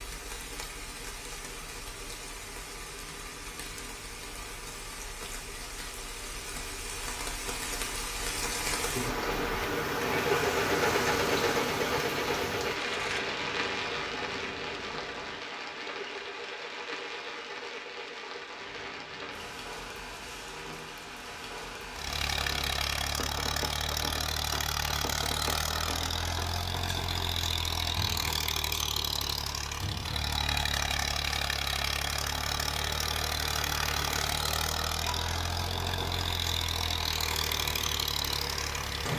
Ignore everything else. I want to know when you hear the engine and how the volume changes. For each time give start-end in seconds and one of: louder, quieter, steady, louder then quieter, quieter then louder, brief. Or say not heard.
0.0-19.7 louder then quieter
21.9-39.1 steady.